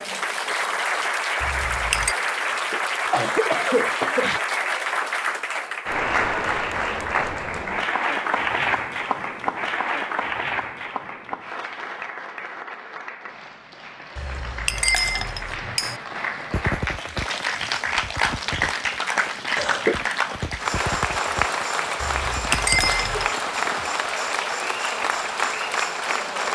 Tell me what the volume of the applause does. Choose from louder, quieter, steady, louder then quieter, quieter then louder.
quieter then louder.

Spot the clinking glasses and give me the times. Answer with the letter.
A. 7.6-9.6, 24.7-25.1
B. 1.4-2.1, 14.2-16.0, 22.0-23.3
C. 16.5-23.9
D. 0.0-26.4
B.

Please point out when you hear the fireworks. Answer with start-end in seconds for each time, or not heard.
16.5-23.9.